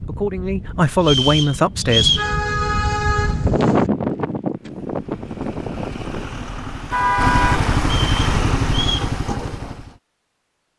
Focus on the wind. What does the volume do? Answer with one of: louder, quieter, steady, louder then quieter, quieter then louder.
louder then quieter.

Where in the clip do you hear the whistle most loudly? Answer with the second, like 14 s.
2 s.